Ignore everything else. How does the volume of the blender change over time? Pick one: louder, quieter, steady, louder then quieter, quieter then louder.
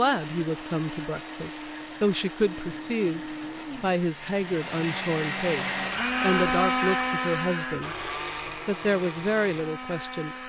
louder then quieter.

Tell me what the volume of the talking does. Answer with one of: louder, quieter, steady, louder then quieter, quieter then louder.
steady.